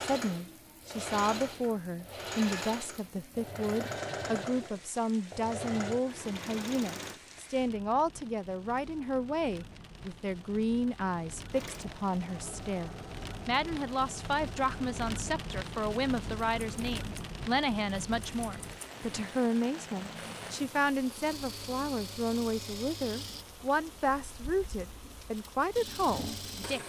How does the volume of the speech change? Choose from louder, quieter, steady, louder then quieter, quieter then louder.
steady.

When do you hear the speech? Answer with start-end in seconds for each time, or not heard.
0.0-26.8.